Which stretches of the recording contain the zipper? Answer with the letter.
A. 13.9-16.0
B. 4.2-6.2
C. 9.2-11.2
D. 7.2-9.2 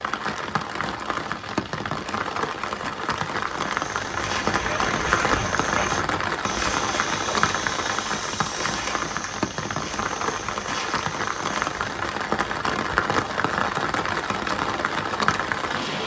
B.